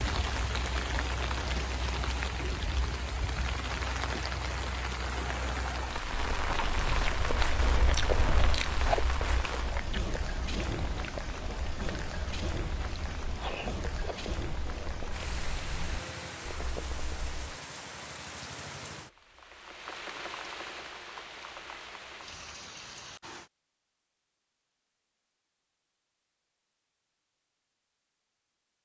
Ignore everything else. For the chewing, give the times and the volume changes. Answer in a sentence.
You can hear the chewing from 6.0 to 17.4 s, getting quieter.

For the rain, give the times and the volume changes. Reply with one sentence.
You can hear the rain from 0.0 to 23.5 s, getting quieter.